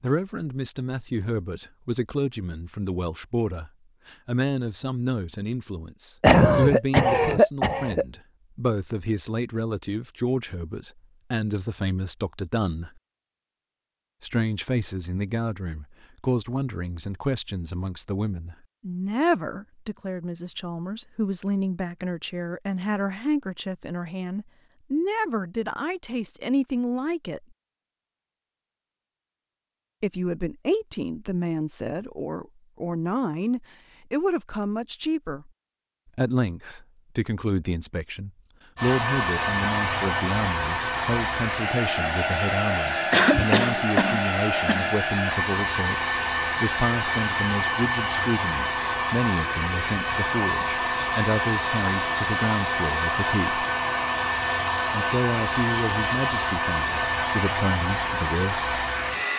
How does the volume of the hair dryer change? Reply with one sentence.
The loudness of the hair dryer stays about the same.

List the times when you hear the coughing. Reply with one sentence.
You can hear the coughing from 6.2 to 8.1 s and from 43.1 to 44.9 s.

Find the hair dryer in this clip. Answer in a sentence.
You can hear the hair dryer from 38.8 to 59.3 s.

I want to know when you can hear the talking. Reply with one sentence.
The talking can be heard from 0.0 to 12.9 s, from 14.2 to 27.4 s, from 30.0 to 35.5 s, from 36.1 to 53.6 s and from 54.9 to 58.9 s.